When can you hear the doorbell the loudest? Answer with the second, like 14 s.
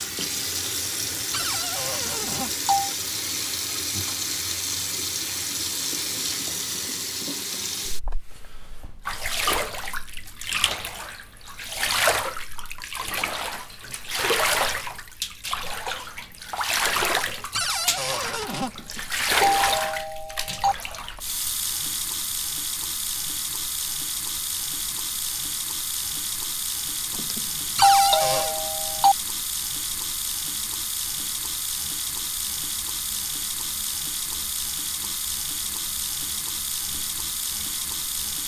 28 s.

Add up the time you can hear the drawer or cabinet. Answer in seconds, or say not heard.
3 s.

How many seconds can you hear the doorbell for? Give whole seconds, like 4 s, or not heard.
5 s.